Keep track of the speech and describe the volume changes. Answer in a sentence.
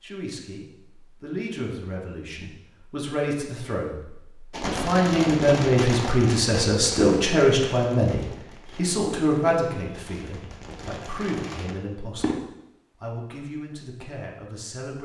The loudness of the speech goes up, then down.